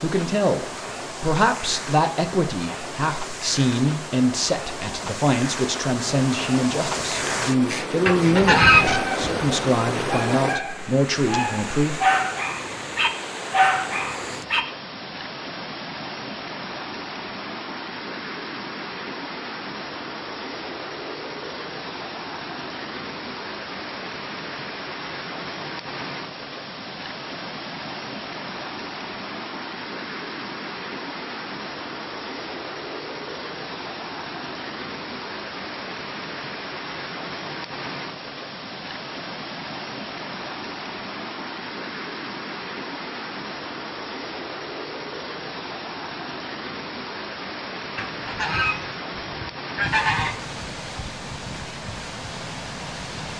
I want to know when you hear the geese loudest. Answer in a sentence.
The loudest moment of the geese is at 9 seconds.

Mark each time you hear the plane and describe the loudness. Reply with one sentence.
The plane can't be heard in this clip.